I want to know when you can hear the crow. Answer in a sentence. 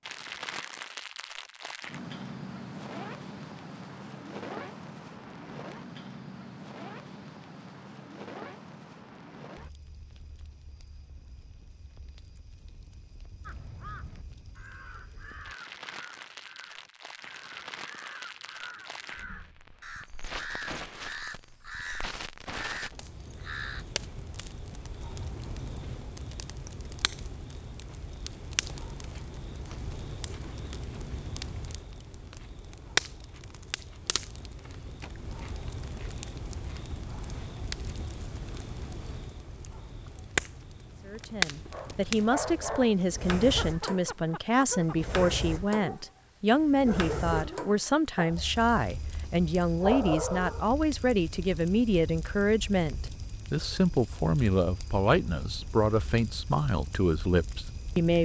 You can hear the crow from 13.4 to 23.9 s.